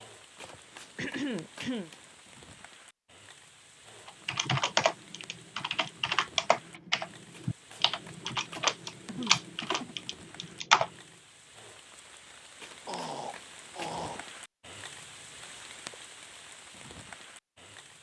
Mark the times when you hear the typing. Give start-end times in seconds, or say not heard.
4.0-10.9.